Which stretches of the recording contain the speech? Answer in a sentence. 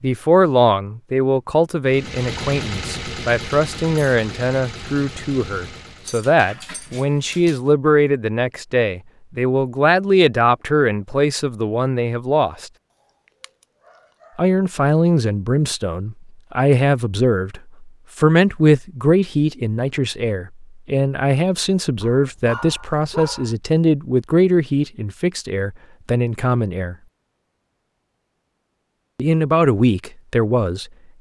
You can hear the speech from 0.0 to 12.7 s, from 14.3 to 26.9 s and from 29.1 to 31.1 s.